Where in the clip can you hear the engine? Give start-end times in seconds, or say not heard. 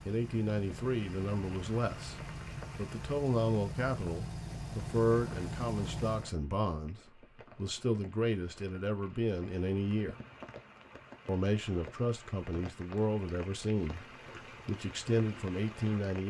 0.0-6.3.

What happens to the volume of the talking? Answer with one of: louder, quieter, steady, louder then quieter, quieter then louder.
steady.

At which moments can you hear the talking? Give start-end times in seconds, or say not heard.
0.1-10.2, 11.2-16.2.